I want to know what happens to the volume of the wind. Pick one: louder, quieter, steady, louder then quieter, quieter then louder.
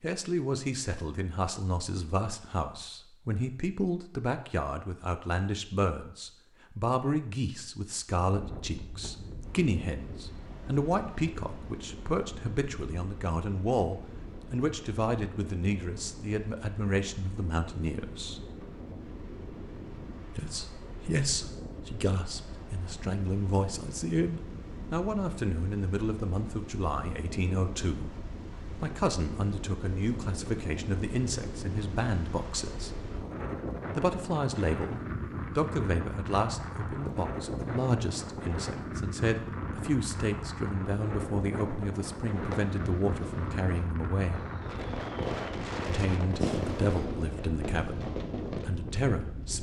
louder.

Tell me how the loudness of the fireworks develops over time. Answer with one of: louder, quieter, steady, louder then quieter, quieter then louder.
louder then quieter.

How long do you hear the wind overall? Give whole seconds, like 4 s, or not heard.
41 s.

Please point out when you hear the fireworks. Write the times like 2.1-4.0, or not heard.
42.3-48.9.